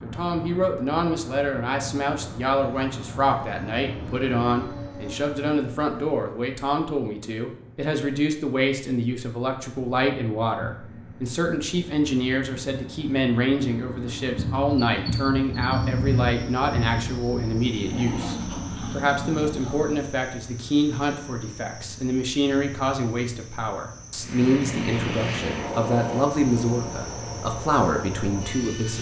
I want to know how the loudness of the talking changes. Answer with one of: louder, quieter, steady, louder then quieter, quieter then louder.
steady.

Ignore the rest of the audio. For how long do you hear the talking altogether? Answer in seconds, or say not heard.
29 s.